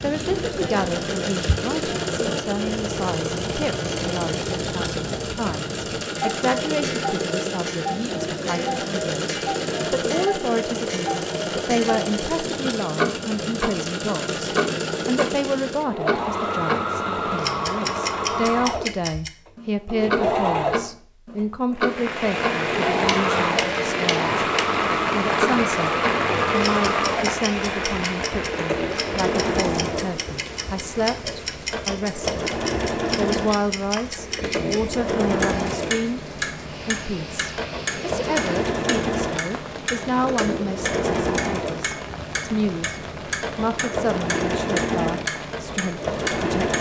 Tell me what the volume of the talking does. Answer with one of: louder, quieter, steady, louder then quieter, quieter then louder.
steady.